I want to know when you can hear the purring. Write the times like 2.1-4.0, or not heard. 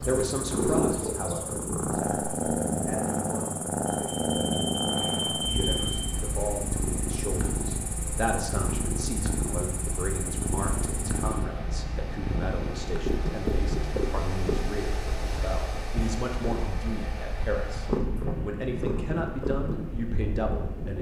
0.0-20.9.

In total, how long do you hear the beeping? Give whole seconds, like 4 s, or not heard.
2 s.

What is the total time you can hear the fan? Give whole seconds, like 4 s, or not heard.
15 s.